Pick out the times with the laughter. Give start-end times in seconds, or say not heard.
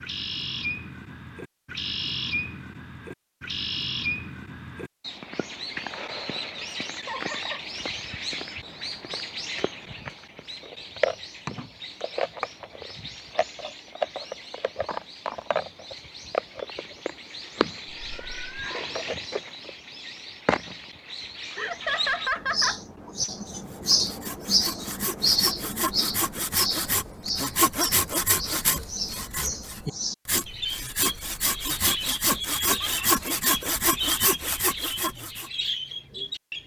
7.0-7.6, 21.6-22.8, 32.3-33.4.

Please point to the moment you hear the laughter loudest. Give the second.
22 s.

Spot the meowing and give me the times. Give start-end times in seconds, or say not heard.
17.9-18.8.